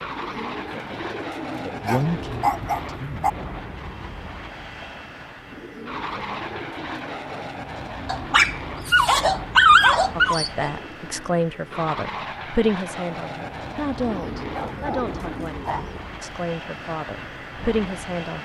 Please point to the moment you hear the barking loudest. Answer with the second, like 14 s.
10 s.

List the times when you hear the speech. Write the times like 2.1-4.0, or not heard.
1.6-3.4, 10.2-18.4.